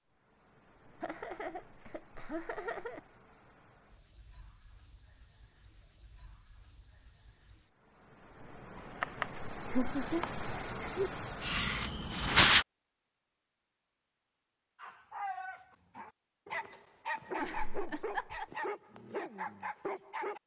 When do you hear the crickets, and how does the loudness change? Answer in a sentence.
The crickets can be heard from 0.0 to 12.7 s, getting louder.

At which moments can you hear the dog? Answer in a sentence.
You can hear the dog from 14.8 to 20.4 s.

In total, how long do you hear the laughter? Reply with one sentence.
The laughter can be heard for 5 seconds in total.